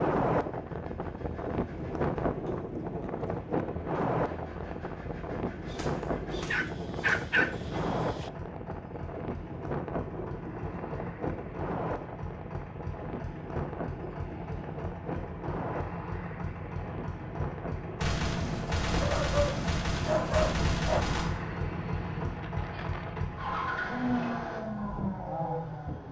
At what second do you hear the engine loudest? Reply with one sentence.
The volume of the engine peaks at 24 seconds.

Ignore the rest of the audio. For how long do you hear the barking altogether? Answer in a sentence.
You can hear the barking for 4 seconds altogether.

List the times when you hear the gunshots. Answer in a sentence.
You can hear the gunshots from 5.7 to 7.2 s and from 17.9 to 21.3 s.